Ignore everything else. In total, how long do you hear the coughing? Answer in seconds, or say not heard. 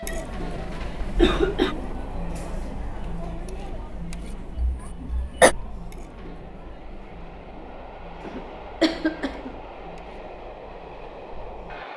3 s.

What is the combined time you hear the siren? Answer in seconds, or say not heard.
not heard.